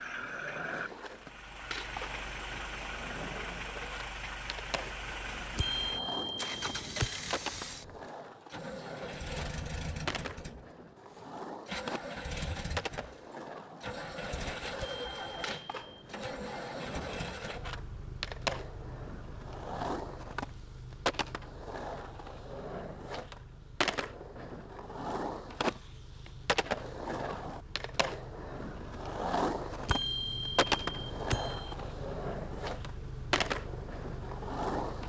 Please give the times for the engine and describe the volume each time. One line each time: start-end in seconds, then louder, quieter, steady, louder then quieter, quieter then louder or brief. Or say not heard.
0.0-35.0 quieter then louder.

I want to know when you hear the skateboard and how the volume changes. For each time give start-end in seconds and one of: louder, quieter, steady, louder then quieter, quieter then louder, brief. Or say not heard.
0.0-35.0 louder.